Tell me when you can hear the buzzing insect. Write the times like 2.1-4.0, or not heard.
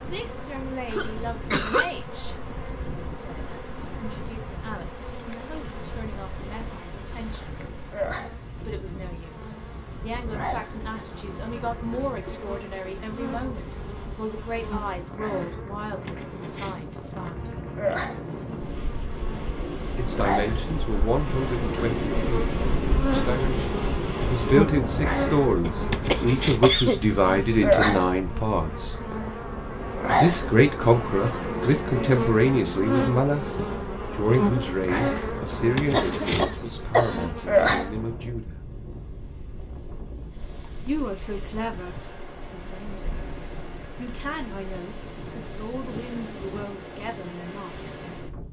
0.0-38.0.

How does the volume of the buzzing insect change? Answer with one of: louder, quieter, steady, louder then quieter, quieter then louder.
louder.